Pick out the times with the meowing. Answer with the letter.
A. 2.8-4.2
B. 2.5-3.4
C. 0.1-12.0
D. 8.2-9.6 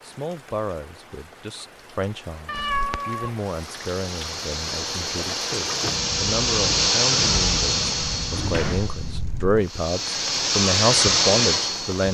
B.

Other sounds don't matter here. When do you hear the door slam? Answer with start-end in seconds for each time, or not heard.
8.2-9.6.